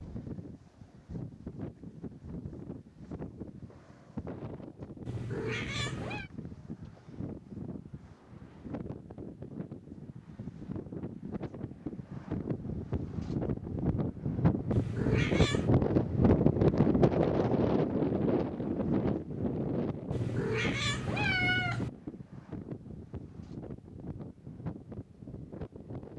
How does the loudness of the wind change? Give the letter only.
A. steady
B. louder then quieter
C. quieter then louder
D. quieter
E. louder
B.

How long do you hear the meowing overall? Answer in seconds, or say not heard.
4 s.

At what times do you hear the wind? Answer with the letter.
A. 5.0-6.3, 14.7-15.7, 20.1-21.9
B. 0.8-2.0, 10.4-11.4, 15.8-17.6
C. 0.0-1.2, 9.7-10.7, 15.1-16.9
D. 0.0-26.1
D.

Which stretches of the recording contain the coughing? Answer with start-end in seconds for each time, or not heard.
not heard.